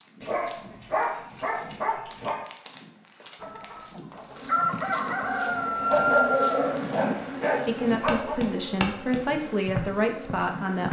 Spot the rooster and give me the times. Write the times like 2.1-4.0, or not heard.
3.4-6.8.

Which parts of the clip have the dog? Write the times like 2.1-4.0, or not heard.
0.2-2.4, 5.5-8.4.